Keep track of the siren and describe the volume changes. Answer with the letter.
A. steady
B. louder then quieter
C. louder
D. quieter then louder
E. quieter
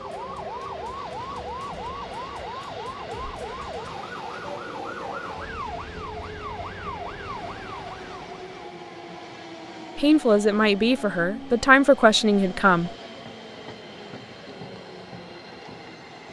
A.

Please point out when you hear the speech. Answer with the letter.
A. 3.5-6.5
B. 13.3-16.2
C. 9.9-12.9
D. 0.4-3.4
C.